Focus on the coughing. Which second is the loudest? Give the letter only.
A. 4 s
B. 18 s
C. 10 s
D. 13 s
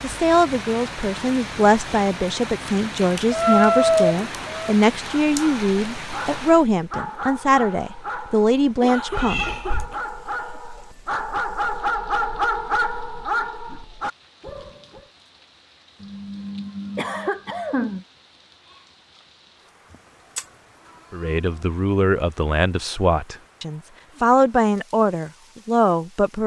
B.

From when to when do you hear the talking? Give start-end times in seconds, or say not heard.
0.0-9.6, 21.1-26.4.